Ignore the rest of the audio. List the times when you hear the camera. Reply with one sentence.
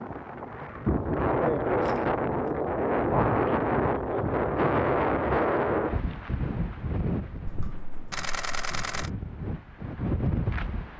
The camera can be heard from 1.8 to 2.5 s and from 7.5 to 9.1 s.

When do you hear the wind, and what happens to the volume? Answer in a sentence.
You can hear the wind from 0.0 to 10.9 s, getting quieter.